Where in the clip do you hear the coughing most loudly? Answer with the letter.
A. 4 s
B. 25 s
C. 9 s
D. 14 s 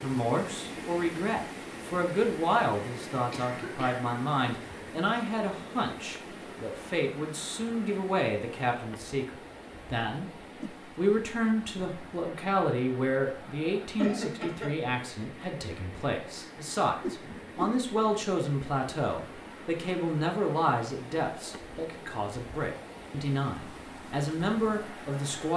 D.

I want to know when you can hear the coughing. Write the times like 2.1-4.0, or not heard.
3.3-4.0, 13.9-14.8.